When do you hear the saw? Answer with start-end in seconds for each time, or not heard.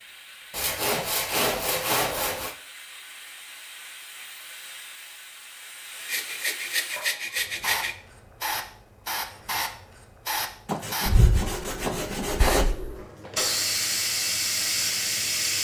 0.5-2.5, 6.0-8.0, 10.7-12.8.